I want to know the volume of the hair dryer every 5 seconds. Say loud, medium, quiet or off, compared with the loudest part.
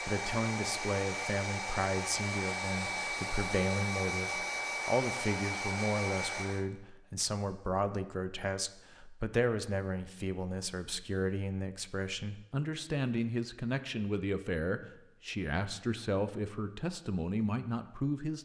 loud, loud, off, off.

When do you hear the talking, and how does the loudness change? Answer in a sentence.
The talking can be heard from 0.0 to 18.3 s, at a steady volume.